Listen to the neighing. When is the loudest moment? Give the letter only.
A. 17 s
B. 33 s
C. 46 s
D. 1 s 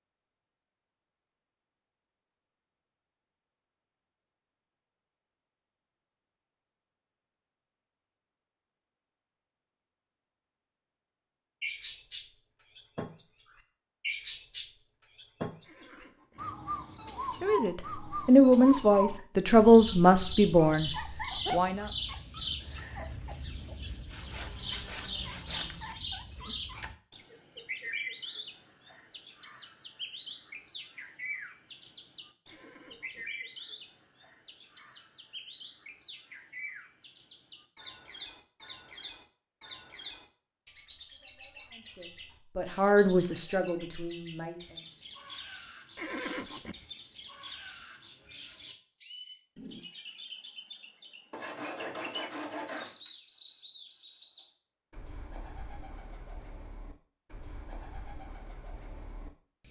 C.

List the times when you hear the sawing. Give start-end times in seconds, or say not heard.
24.1-25.9, 51.3-53.1.